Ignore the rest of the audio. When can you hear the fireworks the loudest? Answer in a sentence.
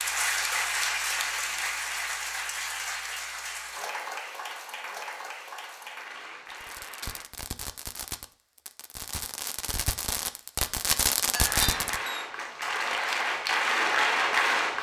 The loudest moment of the fireworks is at 11 seconds.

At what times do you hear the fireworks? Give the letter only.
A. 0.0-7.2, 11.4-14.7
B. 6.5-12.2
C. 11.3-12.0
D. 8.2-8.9
B.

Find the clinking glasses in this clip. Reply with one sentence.
The clinking glasses can be heard from 11.3 to 12.0 s.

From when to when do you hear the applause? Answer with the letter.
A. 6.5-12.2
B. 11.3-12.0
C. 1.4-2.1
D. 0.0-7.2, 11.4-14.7
D.